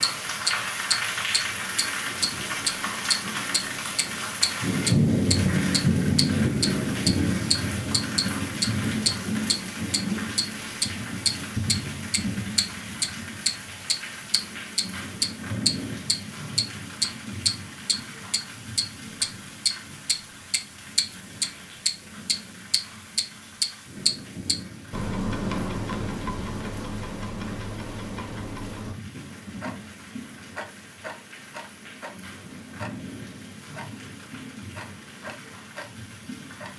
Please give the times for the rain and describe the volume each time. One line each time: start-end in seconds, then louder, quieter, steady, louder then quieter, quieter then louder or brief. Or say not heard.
0.0-36.7 quieter.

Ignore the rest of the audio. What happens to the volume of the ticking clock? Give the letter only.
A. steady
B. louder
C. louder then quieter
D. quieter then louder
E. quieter
E.